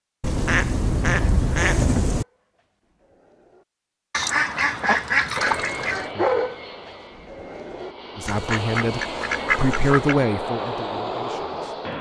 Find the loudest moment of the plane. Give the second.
11 s.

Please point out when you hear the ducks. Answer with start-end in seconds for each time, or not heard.
0.2-2.2, 4.1-6.1, 8.2-10.2.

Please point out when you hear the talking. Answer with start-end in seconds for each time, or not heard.
8.2-11.9.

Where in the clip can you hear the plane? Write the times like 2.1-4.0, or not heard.
5.3-11.9.